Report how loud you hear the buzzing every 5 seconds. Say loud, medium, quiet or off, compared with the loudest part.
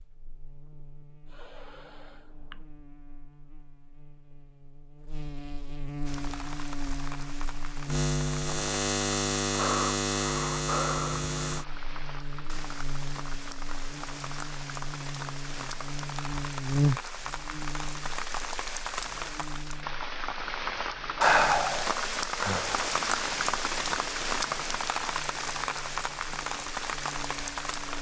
quiet, loud, loud, loud, quiet, quiet.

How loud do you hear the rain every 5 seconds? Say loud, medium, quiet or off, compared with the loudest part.
off, quiet, medium, medium, loud, loud.